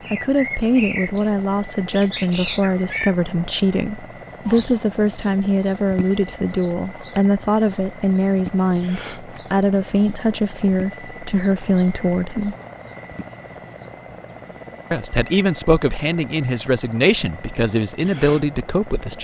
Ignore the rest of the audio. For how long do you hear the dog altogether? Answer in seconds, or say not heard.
not heard.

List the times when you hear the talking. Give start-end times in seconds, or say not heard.
0.1-12.6, 14.9-19.1.